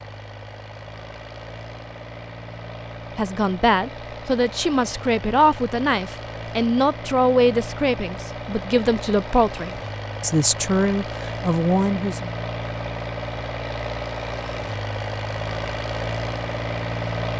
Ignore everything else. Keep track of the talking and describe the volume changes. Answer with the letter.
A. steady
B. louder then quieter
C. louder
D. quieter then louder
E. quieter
A.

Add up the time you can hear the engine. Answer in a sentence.
You can hear the engine for 17 seconds altogether.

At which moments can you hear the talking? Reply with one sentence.
You can hear the talking from 3.1 to 12.3 s.